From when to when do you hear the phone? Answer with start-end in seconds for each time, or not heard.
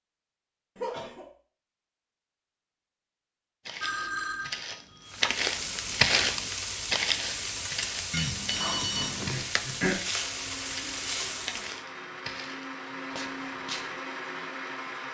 3.8-5.3, 8.1-9.4.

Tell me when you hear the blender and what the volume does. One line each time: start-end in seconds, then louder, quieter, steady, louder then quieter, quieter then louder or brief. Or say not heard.
10.2-15.0 louder.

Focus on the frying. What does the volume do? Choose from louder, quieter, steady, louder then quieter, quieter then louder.
steady.